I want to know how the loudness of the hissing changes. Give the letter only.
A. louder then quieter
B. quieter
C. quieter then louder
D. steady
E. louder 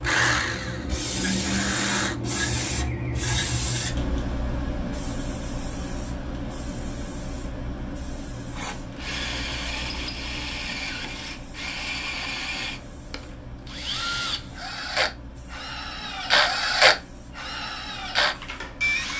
B.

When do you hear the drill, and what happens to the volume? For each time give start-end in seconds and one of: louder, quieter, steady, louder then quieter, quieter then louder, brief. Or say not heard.
0.0-2.1 brief
8.5-19.1 louder.